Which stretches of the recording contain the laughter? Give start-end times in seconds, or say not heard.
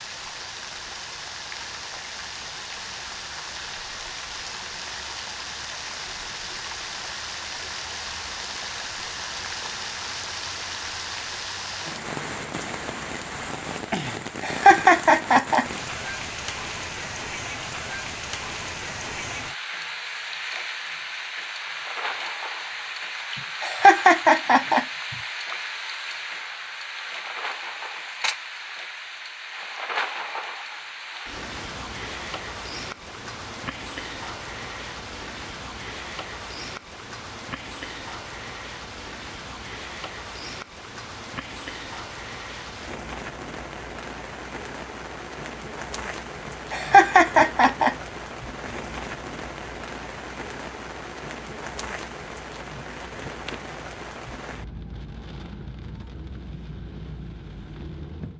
14.4-15.7, 23.6-24.9, 46.7-47.9.